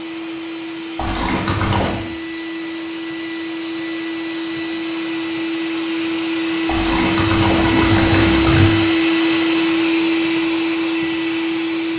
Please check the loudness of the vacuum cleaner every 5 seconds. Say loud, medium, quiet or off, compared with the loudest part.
medium, loud, loud.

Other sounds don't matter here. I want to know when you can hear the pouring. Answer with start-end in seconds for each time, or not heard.
0.9-1.9, 6.7-8.7.